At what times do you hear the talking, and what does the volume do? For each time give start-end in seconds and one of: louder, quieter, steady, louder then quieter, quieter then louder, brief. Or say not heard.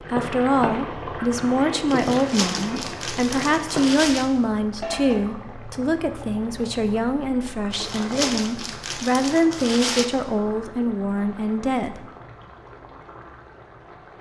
0.0-12.1 steady.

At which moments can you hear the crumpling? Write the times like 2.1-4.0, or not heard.
1.9-4.3, 7.7-10.1.